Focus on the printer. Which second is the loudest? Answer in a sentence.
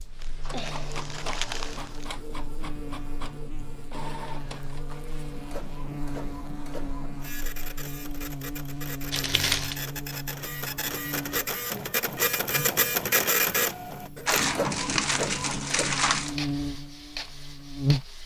The loudest moment of the printer is at 13 seconds.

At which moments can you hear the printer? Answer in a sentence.
The printer can be heard from 0.0 to 18.2 s.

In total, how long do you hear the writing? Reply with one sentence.
The writing can't be heard in this clip.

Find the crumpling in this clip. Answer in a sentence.
You can hear the crumpling from 0.2 to 2.1 s, from 9.1 to 9.8 s and from 14.2 to 16.4 s.